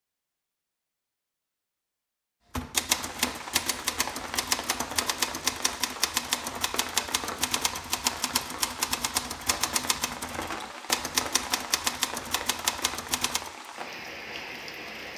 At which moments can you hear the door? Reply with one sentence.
You can't hear the door here.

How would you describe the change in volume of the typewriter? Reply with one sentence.
The loudness of the typewriter stays about the same.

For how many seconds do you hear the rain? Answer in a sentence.
The rain can be heard for 12 seconds in total.